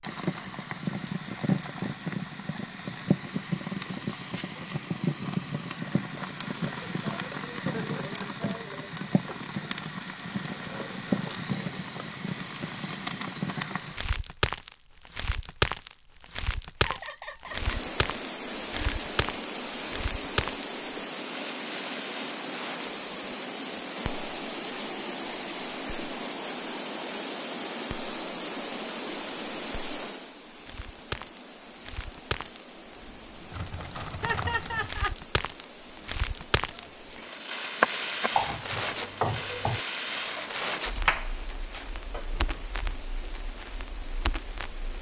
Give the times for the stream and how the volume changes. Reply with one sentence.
The stream can be heard from 17.4 to 44.9 s, getting quieter.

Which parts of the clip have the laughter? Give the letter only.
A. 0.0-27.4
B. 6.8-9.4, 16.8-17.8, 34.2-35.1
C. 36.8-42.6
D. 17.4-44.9
B.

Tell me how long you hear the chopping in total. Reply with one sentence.
The chopping can be heard for 6 seconds in total.